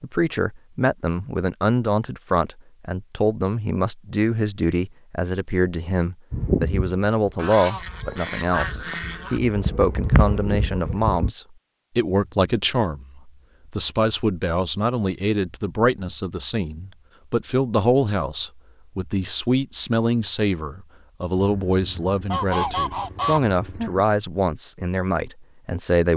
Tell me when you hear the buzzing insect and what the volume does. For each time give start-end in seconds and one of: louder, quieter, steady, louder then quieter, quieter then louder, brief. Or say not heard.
6.3-11.3 quieter then louder.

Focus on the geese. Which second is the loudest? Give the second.
23 s.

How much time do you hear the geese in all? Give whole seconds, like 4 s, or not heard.
5 s.